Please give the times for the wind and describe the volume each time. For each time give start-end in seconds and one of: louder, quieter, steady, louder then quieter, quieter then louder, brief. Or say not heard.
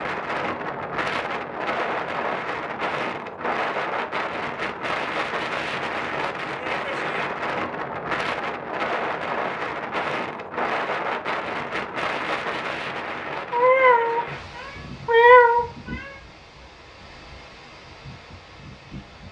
0.0-19.2 quieter.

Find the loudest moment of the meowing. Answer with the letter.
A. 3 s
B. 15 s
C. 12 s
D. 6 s
B.